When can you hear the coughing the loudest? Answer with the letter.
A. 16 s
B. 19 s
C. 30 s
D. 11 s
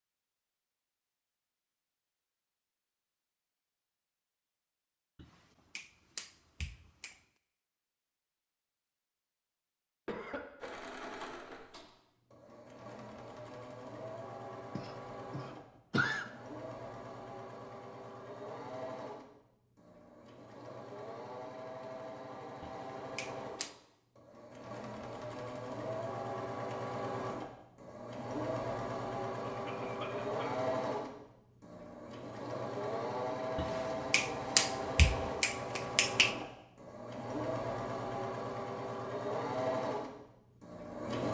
A.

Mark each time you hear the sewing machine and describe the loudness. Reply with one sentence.
The sewing machine can be heard from 10.6 to 41.3 s, getting louder.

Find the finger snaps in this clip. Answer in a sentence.
The finger snaps can be heard from 5.2 to 7.2 s, from 22.6 to 23.8 s and from 33.5 to 36.4 s.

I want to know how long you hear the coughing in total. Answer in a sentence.
The coughing can be heard for 3 seconds in total.